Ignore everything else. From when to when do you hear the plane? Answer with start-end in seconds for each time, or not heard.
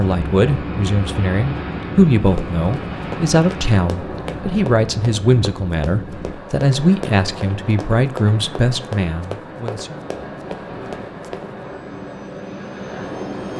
0.0-6.3, 11.6-13.5.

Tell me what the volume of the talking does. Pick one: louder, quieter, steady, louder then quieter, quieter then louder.
steady.